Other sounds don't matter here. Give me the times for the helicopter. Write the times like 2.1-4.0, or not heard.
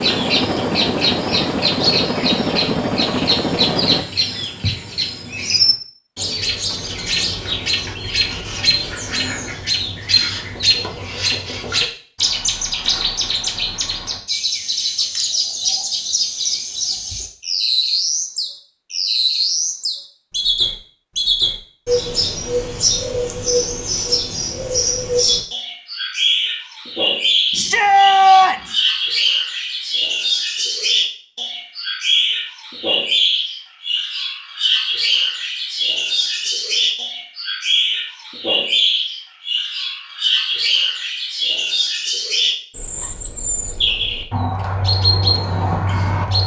0.0-4.0.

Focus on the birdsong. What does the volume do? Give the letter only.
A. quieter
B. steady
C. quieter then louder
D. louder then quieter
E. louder
B.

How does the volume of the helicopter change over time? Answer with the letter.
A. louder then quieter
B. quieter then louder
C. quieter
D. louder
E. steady
E.